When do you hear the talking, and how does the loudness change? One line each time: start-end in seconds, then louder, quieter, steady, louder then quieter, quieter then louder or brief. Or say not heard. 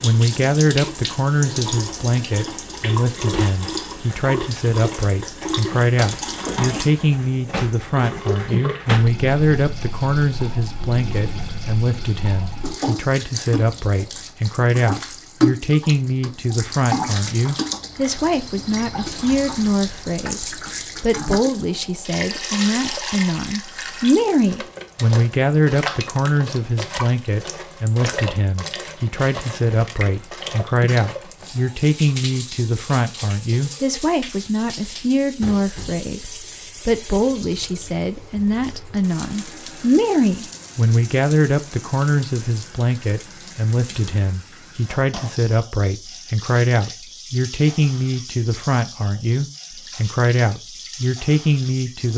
0.0-52.1 steady.